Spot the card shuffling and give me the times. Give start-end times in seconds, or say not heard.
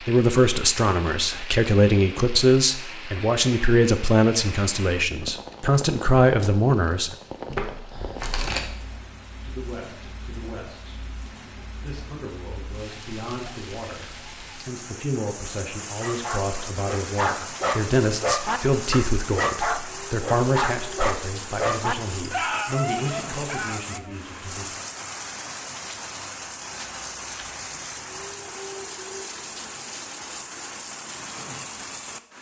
7.5-8.9, 26.8-27.6.